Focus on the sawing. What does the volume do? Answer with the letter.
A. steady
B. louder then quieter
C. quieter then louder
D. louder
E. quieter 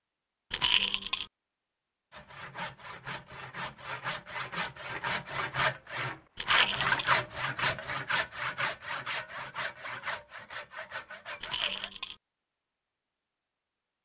B.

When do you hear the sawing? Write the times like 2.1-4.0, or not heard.
2.1-11.9.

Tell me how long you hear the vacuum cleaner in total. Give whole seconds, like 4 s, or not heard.
not heard.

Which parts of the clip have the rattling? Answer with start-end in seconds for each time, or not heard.
0.5-1.2, 6.3-7.2, 11.4-12.2.